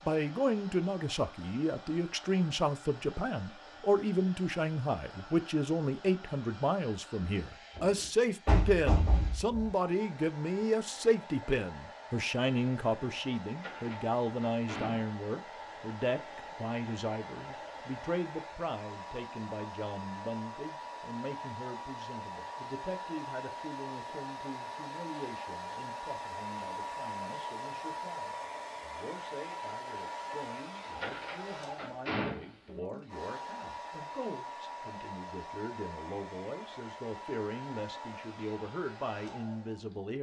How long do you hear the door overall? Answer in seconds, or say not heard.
4 s.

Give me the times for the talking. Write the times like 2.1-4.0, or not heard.
0.1-40.1.